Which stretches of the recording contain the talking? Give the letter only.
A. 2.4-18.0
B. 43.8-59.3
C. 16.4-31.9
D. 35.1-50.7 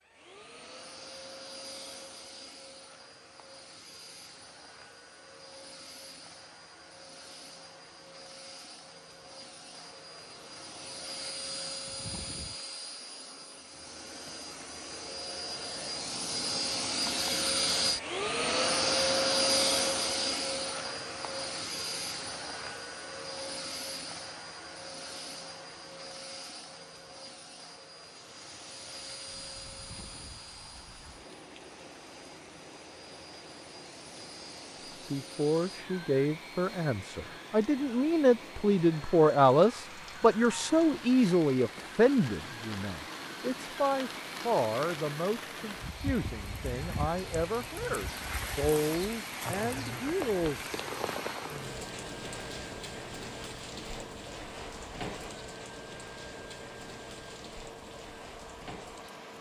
D.